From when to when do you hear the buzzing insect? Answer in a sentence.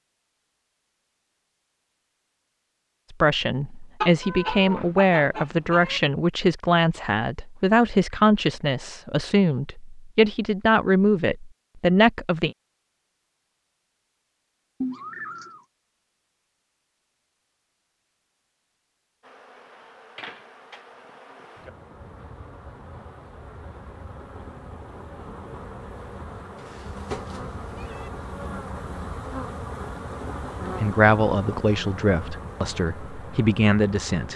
You can hear the buzzing insect from 19.2 to 34.3 s.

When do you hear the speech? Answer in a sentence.
The speech can be heard from 3.1 to 12.5 s and from 30.6 to 34.3 s.